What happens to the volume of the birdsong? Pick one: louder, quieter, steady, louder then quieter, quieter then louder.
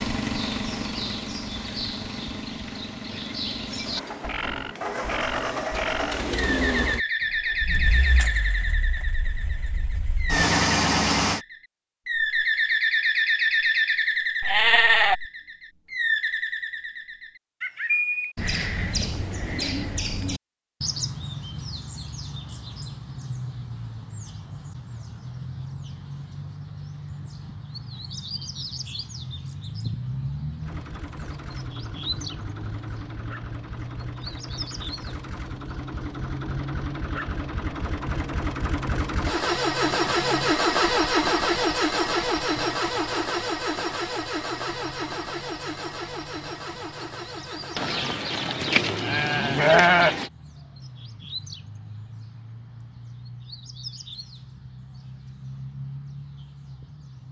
quieter.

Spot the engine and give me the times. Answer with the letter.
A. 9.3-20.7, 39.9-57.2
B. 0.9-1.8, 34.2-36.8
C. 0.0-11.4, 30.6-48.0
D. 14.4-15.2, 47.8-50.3
C.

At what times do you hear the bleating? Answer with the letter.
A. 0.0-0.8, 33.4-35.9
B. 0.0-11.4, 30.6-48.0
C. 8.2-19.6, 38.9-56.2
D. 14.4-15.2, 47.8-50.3
D.